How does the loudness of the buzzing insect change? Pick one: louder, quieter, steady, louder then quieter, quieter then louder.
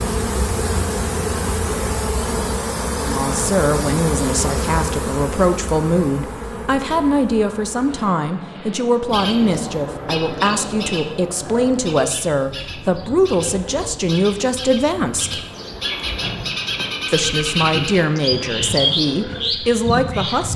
quieter.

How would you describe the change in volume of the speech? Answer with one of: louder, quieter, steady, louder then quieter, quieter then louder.
steady.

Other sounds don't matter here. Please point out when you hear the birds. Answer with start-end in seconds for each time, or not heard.
9.1-20.5.